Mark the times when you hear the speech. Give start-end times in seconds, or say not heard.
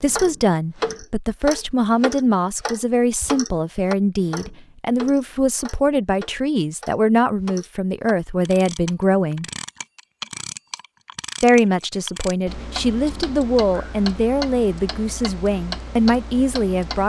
0.0-9.4, 11.4-17.0.